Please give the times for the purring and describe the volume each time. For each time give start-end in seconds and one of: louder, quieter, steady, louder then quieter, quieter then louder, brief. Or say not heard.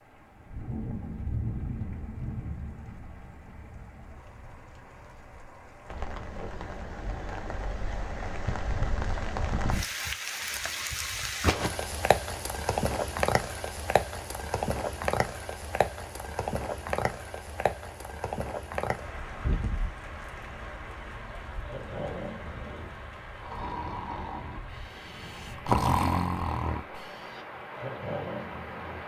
not heard.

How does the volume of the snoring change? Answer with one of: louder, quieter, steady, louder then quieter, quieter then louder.
louder then quieter.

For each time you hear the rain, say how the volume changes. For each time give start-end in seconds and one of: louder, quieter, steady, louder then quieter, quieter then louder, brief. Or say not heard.
0.0-29.0 louder then quieter.